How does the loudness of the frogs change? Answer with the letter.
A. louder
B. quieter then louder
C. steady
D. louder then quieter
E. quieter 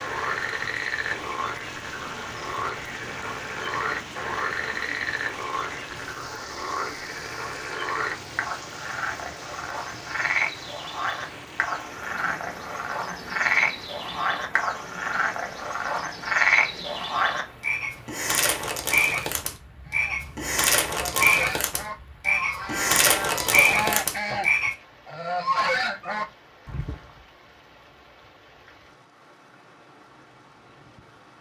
A.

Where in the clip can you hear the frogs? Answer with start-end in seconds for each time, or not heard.
0.0-24.8.